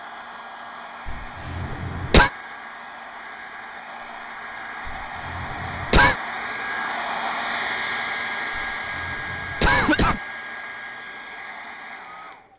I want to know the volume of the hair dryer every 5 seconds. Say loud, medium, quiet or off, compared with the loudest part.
medium, loud, medium.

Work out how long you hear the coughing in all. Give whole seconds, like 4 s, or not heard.
4 s.